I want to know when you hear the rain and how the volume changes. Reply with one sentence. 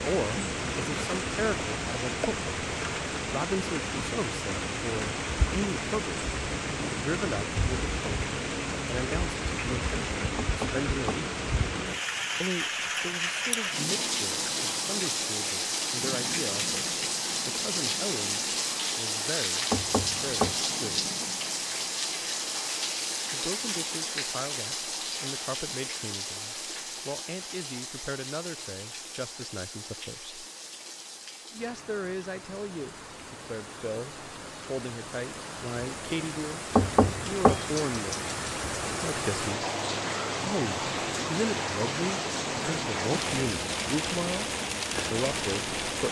The rain can be heard from 0.0 to 46.0 s, getting quieter then louder.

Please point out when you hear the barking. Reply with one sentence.
You can't hear the barking here.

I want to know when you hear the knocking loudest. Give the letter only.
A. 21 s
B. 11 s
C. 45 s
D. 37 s
D.